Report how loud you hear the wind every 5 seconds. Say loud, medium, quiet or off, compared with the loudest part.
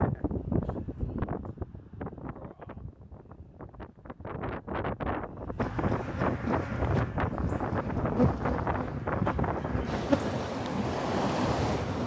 medium, loud, loud.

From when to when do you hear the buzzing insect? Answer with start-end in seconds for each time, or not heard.
5.5-12.0.